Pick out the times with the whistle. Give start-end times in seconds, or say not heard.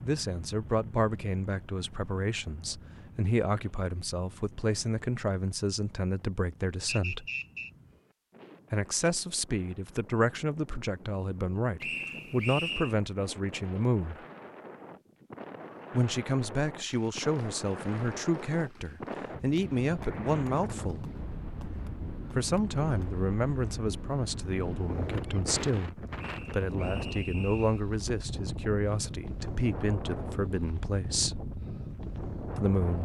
6.8-7.7, 11.8-12.9, 26.1-27.8.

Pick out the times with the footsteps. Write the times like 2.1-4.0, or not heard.
not heard.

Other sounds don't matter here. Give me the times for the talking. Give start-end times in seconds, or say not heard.
0.0-7.2, 8.7-14.2, 15.9-21.1, 22.4-31.4, 32.5-33.0.